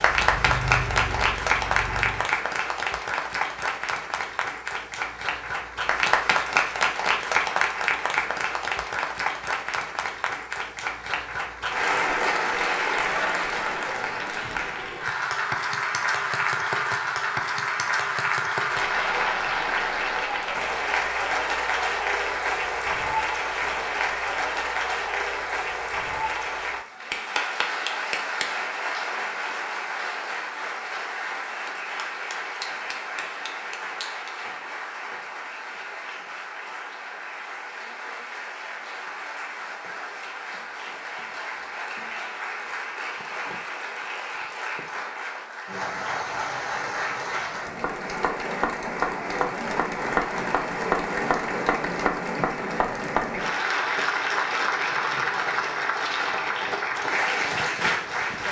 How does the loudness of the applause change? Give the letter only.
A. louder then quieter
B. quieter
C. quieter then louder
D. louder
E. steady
C.